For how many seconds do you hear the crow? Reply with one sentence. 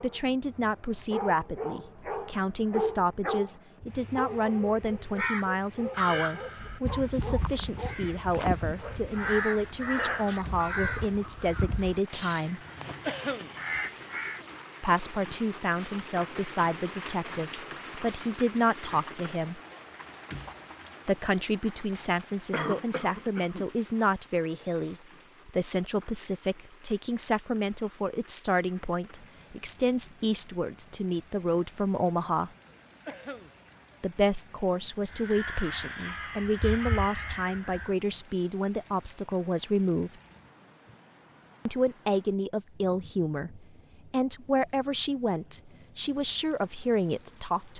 You can hear the crow for 12 seconds altogether.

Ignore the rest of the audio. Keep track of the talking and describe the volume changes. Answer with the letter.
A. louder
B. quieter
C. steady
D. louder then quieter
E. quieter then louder
C.